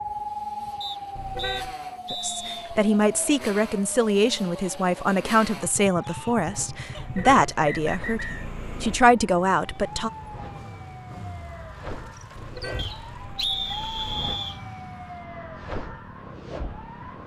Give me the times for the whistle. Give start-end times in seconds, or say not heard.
0.8-2.6, 7.2-8.5, 12.8-14.6.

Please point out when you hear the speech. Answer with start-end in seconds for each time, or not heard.
2.1-10.1.